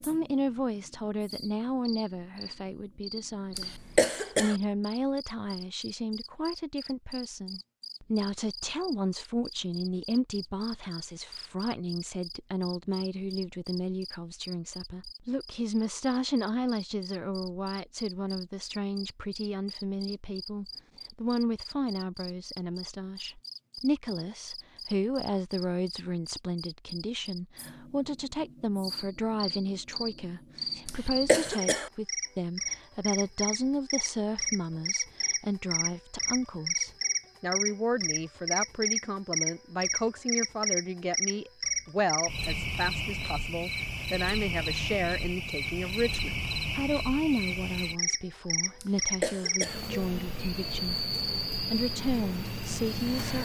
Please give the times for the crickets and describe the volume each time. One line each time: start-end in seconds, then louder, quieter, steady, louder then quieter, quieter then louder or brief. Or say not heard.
0.0-53.4 louder.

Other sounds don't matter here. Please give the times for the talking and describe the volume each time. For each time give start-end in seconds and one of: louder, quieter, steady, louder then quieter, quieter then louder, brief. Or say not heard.
0.0-51.0 steady
51.7-53.4 brief.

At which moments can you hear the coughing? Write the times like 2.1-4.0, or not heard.
3.5-4.5, 30.9-31.9, 48.8-49.8.